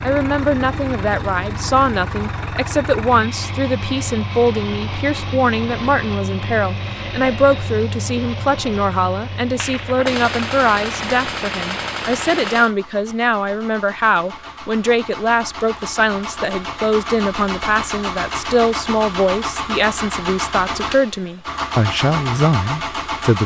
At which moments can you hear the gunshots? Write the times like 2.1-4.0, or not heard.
9.6-12.7.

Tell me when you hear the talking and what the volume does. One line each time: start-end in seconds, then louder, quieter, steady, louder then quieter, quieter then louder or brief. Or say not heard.
0.0-23.4 steady.